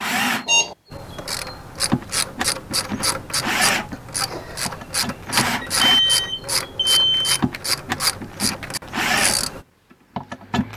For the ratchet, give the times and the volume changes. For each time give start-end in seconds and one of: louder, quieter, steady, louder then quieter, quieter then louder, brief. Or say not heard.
0.9-9.7 steady.